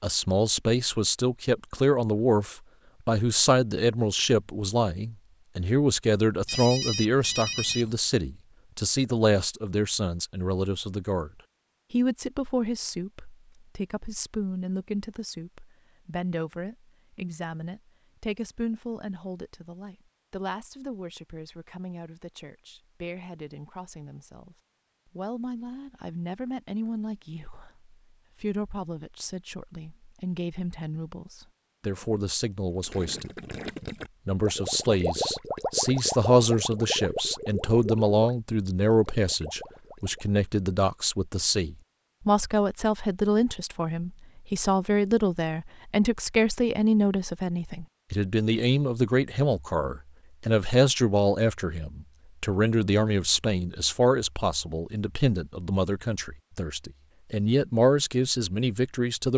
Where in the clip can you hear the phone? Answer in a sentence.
The phone can be heard from 6.5 to 8.0 s.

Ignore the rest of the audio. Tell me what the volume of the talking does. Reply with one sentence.
The volume of the talking goes down, then up.